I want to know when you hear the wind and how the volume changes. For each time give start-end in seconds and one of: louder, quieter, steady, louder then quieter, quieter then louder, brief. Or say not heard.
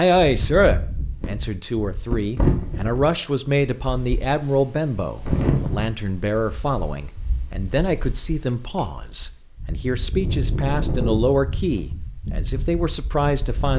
0.1-13.7 quieter then louder.